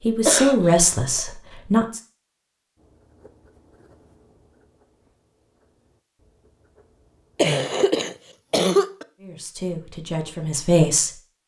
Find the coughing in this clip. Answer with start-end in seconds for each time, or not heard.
0.2-1.2, 7.3-9.1.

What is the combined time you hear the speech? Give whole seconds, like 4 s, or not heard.
4 s.